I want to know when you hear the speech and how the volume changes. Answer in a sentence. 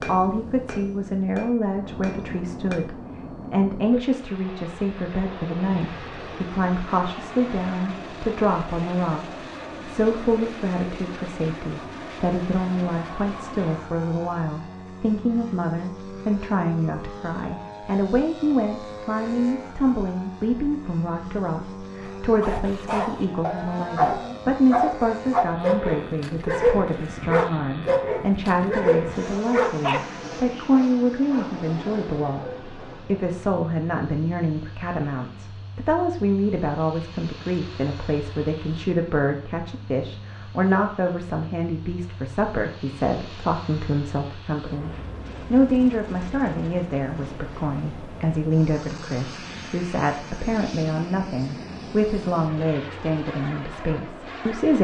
The speech can be heard from 0.0 to 9.2 s, at a steady volume; and from 9.8 to 54.7 s, at a steady volume.